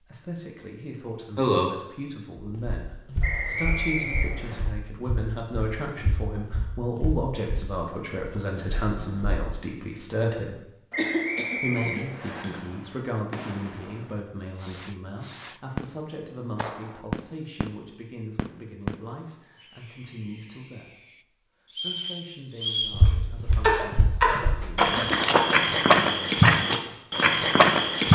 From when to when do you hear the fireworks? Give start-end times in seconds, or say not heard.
12.4-21.2.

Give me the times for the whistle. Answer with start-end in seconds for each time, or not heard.
3.2-4.7, 10.9-12.4, 21.7-23.0.